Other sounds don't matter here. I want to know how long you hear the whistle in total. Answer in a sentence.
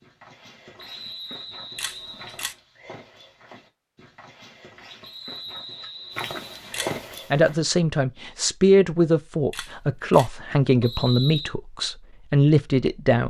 You can hear the whistle for 4 seconds altogether.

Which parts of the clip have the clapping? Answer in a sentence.
You can't hear the clapping here.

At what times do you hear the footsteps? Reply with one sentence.
You can hear the footsteps from 0.0 to 7.5 s.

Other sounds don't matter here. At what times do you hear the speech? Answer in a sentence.
You can hear the speech from 7.3 to 13.2 s.